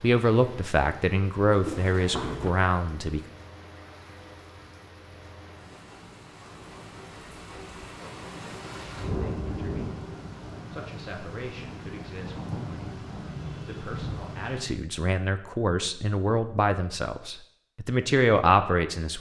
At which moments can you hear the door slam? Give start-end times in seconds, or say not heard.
1.6-2.5.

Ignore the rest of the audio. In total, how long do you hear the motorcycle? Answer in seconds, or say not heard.
not heard.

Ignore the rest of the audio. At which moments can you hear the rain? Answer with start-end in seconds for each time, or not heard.
0.0-14.8.